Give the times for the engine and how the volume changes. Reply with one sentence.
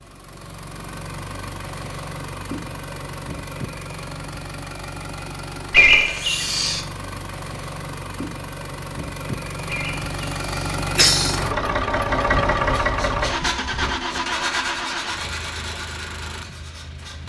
You can hear the engine from 0.0 to 17.2 s, getting louder then quieter.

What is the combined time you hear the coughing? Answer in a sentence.
The coughing can be heard for 3 seconds in total.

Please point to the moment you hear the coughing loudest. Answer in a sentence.
The loudest moment of the coughing is at 6 seconds.